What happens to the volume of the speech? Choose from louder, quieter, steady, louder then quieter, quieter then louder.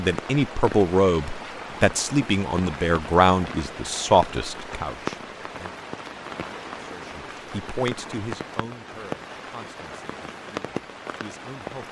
quieter.